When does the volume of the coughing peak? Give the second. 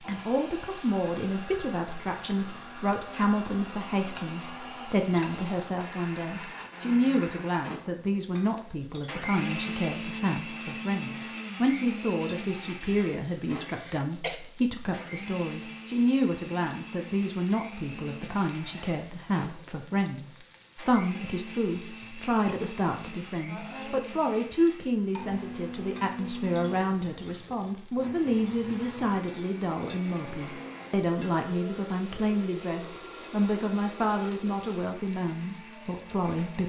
14 s.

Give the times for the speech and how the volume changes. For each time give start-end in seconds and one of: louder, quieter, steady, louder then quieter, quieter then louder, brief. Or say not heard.
0.1-36.6 steady.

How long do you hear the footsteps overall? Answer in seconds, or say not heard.
not heard.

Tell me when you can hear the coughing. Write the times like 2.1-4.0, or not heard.
13.6-14.4, 22.0-22.7.